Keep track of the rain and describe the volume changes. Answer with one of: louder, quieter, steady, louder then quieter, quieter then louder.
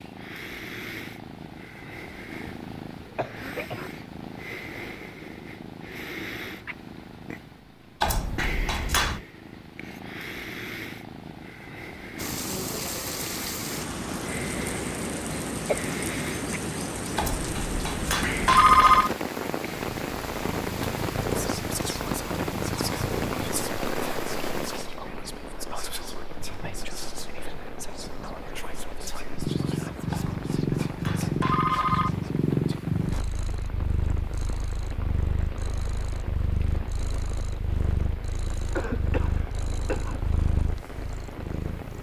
quieter.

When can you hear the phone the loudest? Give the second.
19 s.